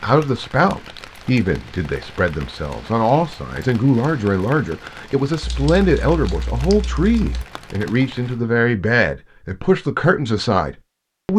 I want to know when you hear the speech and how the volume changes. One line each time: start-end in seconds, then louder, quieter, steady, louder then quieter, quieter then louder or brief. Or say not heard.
0.0-11.3 steady.